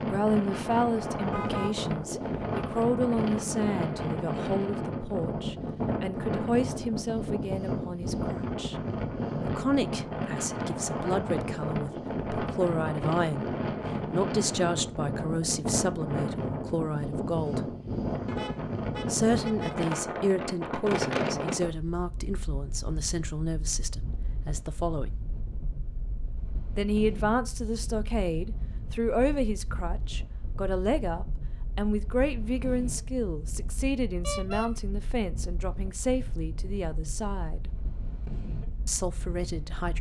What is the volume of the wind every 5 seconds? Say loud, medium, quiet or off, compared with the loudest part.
loud, loud, loud, loud, loud, quiet, quiet, quiet.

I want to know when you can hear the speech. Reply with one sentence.
The speech can be heard from 0.1 to 8.8 s, from 9.4 to 17.7 s, from 19.1 to 25.1 s, from 26.8 to 37.7 s and from 38.9 to 39.9 s.